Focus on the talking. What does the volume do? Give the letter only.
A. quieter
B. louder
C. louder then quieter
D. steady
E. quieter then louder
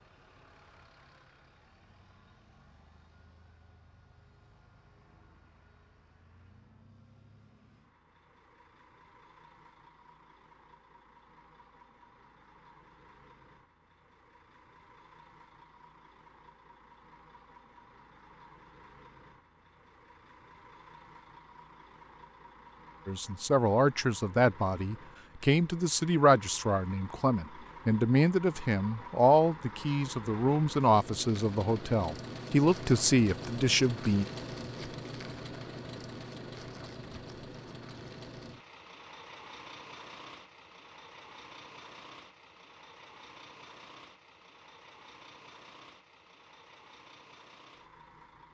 D.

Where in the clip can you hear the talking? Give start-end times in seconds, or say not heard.
23.1-34.2.